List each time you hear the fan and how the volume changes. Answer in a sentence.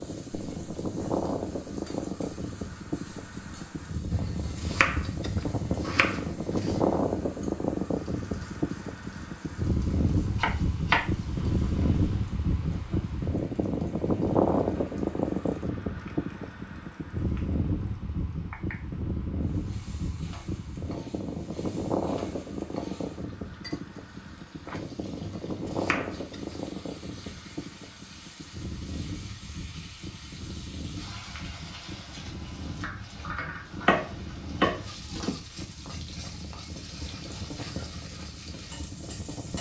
You can hear the fan from 0.0 to 39.5 s, getting quieter.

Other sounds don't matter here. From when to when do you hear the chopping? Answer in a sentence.
The chopping can be heard from 4.1 to 7.0 s, from 10.3 to 12.0 s, from 25.2 to 26.6 s and from 33.4 to 35.3 s.